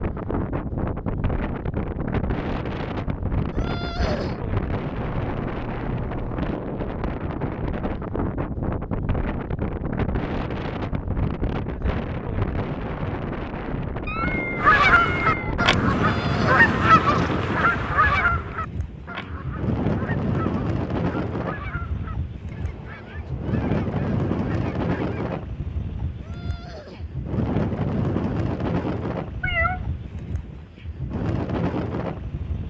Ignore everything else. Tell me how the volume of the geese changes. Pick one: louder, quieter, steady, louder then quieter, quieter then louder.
quieter.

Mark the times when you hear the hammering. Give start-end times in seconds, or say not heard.
not heard.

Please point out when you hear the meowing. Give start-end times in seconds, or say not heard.
5.0-6.5, 14.1-15.6, 29.4-29.9.